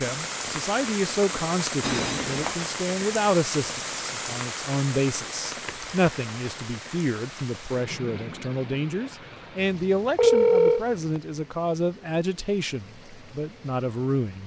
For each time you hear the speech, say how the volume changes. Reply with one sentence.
You can hear the speech from 0.0 to 14.4 s, at a steady volume.